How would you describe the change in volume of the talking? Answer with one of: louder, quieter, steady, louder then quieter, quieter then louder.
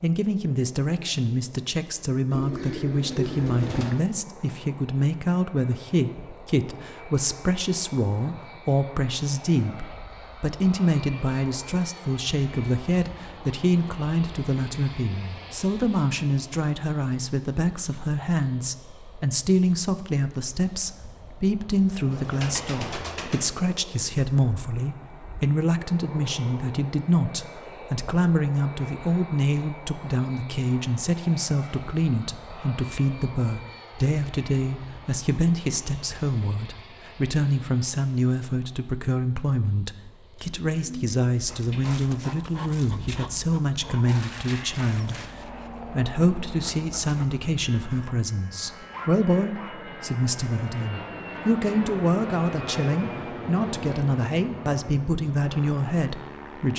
steady.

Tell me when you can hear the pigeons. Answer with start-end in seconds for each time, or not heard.
2.3-4.0, 22.0-23.6, 40.4-42.0.